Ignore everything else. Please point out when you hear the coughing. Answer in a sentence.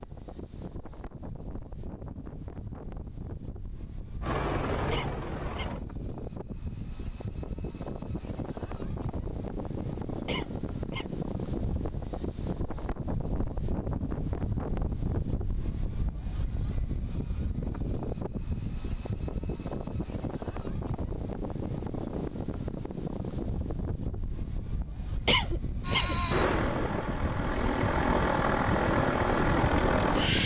You can hear the coughing from 4.9 to 5.8 s, from 10.2 to 11.2 s and from 25.2 to 26.1 s.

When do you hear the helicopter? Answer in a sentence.
The helicopter can be heard from 4.2 to 5.8 s and from 25.8 to 30.4 s.